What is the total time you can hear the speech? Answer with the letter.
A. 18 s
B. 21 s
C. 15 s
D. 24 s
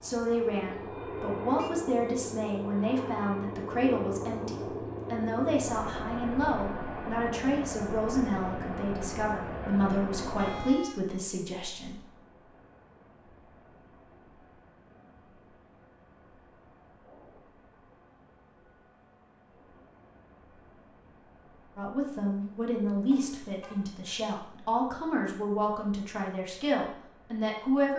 A.